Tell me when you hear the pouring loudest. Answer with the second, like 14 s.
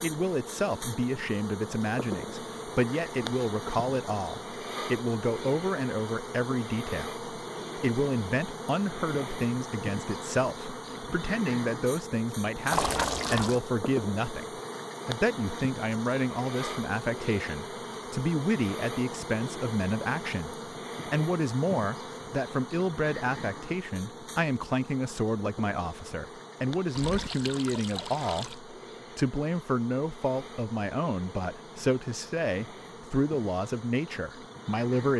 13 s.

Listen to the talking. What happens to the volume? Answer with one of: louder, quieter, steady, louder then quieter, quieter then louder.
steady.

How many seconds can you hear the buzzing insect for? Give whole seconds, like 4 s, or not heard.
35 s.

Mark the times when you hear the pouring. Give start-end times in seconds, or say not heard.
12.7-13.6, 26.9-28.6.